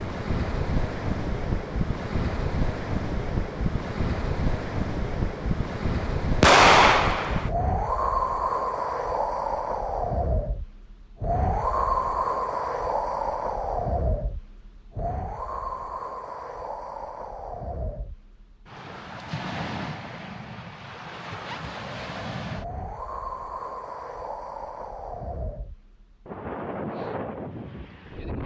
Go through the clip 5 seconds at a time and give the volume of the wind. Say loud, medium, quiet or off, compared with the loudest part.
loud, loud, loud, medium, medium, medium.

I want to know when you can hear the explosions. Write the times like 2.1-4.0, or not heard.
6.4-7.5.